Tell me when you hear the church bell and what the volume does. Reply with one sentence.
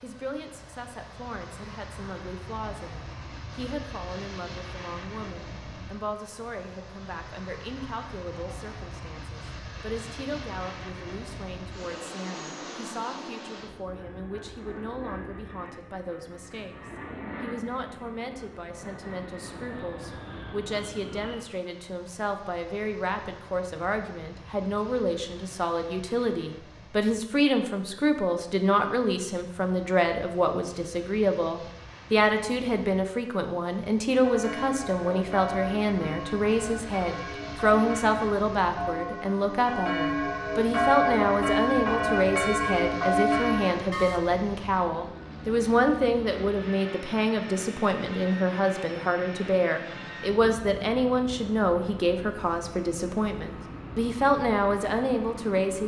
The church bell can be heard from 34.1 to 44.2 s, getting louder.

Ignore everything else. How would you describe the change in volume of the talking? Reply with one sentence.
The volume of the talking goes up.